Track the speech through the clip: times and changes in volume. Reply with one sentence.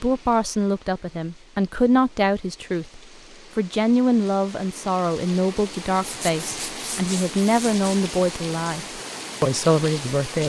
The speech can be heard from 0.0 to 10.4 s, at a steady volume.